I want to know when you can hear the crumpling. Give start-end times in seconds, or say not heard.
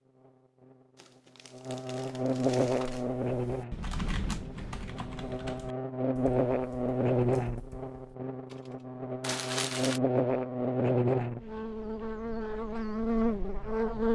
0.9-3.1, 9.2-10.0.